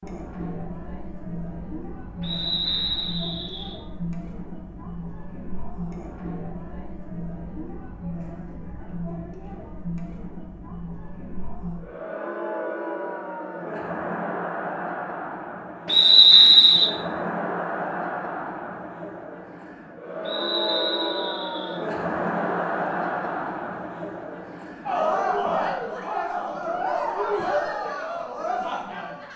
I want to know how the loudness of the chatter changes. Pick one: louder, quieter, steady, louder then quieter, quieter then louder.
louder.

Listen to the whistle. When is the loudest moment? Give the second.
16 s.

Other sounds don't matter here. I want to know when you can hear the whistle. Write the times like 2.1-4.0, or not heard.
2.2-3.8, 15.8-16.9, 20.2-21.8.